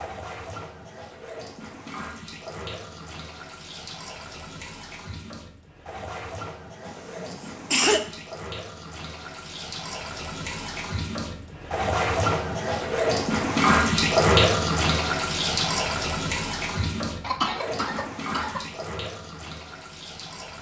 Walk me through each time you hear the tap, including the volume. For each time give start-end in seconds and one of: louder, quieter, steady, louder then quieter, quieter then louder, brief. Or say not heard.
0.0-20.5 louder then quieter.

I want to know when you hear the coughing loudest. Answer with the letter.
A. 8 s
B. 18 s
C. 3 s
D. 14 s
A.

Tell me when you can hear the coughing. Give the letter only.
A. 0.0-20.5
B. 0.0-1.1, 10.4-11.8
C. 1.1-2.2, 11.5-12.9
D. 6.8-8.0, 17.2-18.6
D.